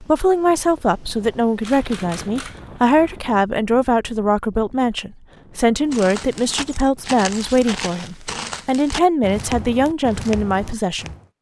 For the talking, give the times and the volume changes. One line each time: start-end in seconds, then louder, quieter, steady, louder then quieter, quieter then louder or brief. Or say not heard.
0.0-11.1 steady.